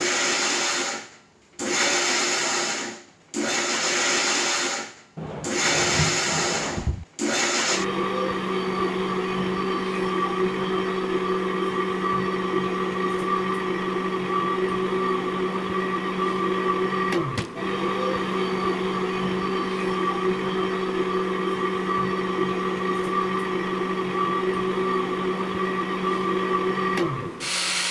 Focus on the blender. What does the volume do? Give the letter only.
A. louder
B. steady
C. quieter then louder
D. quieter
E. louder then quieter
B.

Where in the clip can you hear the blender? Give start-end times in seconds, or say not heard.
0.0-27.8.